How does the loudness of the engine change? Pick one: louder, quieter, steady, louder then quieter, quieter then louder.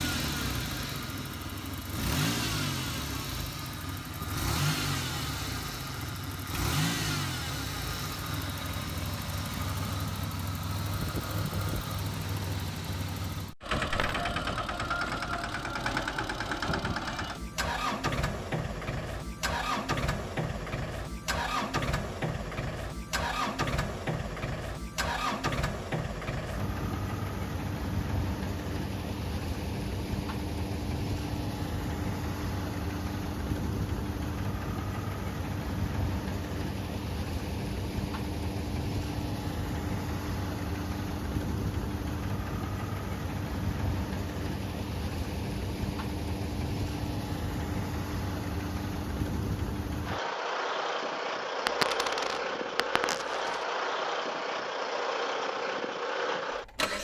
steady.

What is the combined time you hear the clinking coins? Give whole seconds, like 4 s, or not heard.
2 s.